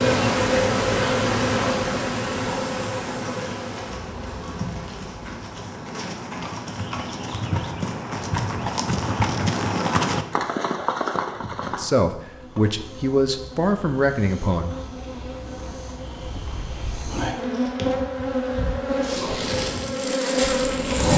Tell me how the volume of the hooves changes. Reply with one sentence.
The loudness of the hooves goes up.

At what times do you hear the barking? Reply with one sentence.
You can't hear the barking here.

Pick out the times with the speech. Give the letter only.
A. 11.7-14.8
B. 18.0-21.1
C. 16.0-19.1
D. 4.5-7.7
A.